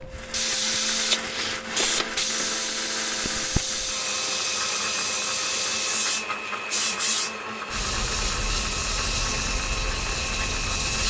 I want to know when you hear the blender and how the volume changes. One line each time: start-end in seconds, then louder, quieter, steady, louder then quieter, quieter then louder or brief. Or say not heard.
0.0-11.0 steady.